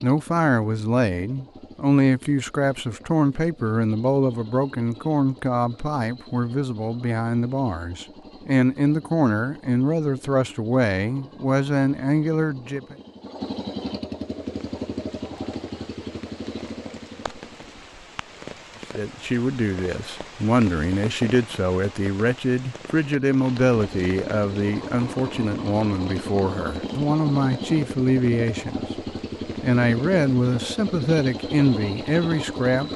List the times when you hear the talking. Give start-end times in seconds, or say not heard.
0.0-12.9, 18.9-28.9, 29.6-32.9.